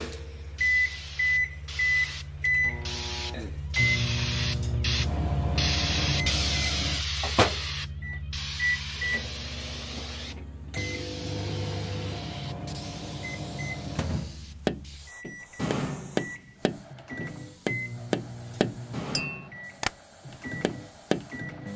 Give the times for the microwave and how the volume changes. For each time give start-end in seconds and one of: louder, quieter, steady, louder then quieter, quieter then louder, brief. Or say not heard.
0.0-21.7 quieter.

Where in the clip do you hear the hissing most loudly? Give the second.
6 s.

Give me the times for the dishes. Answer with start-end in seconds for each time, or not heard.
not heard.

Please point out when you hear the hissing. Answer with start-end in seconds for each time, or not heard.
0.1-21.7.